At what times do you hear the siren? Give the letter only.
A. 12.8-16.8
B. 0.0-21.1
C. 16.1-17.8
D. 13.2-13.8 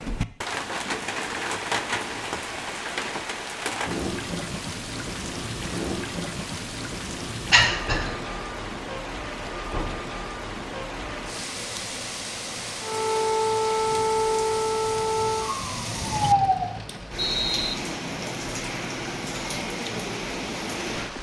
A.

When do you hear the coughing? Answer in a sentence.
The coughing can be heard from 7.5 to 8.1 s.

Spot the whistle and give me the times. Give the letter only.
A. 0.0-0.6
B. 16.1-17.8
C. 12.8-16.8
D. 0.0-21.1
B.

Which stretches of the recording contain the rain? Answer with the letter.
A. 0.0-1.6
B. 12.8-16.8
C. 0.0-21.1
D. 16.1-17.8
C.